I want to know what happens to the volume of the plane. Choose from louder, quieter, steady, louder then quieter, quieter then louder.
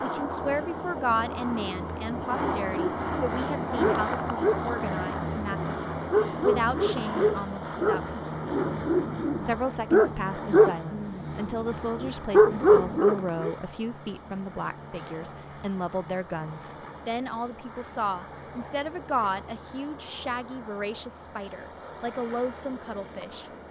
quieter.